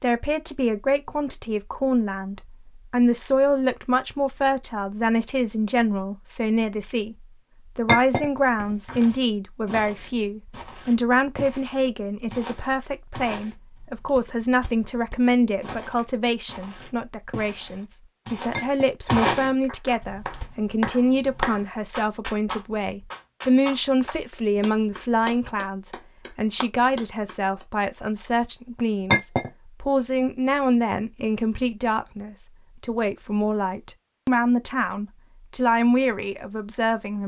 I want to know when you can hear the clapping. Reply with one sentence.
The clapping can be heard from 19.6 to 27.6 s.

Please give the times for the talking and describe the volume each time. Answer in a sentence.
You can hear the talking from 0.0 to 37.2 s, at a steady volume.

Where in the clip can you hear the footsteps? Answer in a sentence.
You can hear the footsteps from 8.6 to 20.6 s.